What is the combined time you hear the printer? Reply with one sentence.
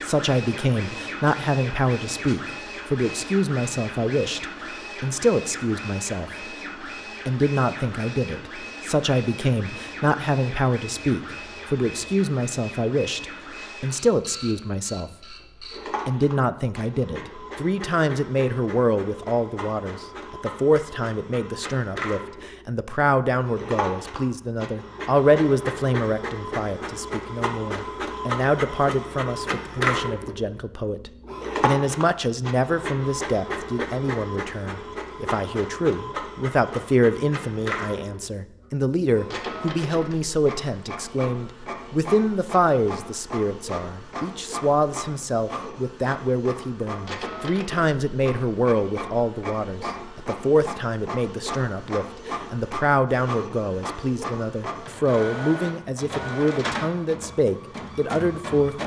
The printer can be heard for 59 seconds in total.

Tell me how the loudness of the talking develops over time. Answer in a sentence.
The volume of the talking stays about the same.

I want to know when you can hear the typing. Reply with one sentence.
The typing can't be heard in this clip.